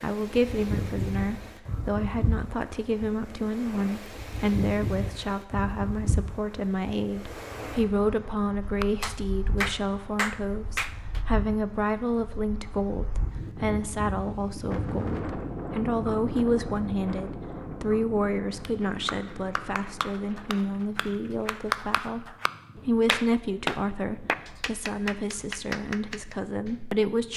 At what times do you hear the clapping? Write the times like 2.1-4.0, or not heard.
8.8-11.2, 18.6-27.1.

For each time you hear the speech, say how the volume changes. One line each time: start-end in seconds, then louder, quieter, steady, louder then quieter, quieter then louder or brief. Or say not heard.
0.0-27.3 steady.